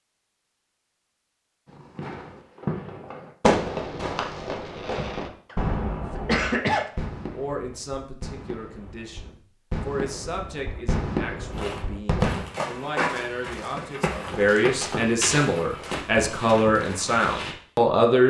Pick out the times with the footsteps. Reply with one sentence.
You can hear the footsteps from 11.5 to 17.6 s.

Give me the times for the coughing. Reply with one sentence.
You can hear the coughing from 6.2 to 6.8 s.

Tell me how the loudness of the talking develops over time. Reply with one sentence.
The loudness of the talking goes up.